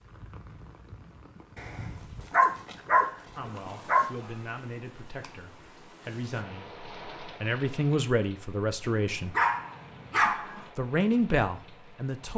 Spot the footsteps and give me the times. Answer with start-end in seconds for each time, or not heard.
not heard.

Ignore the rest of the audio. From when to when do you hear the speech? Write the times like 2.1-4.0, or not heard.
3.4-9.3, 10.8-12.3.